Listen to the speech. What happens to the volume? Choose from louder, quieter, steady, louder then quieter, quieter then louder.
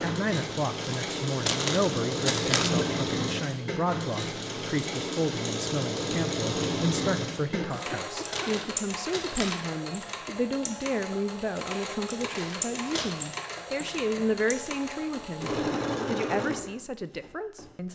steady.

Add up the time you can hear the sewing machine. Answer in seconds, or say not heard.
18 s.